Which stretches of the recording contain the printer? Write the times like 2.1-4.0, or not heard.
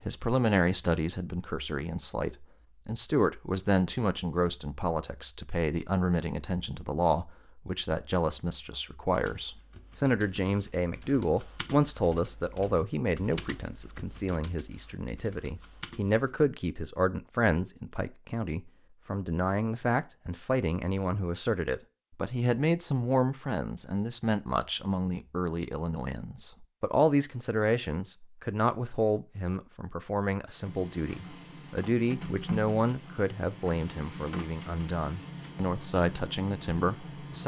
30.6-37.4.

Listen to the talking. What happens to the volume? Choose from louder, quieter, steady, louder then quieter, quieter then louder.
steady.